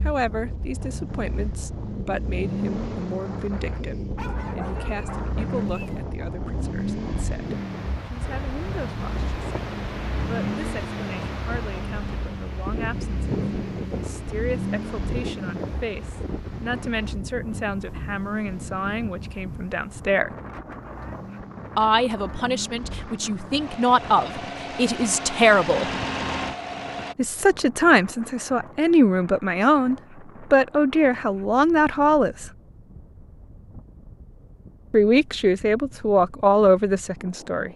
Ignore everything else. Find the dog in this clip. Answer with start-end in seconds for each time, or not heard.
4.2-6.0.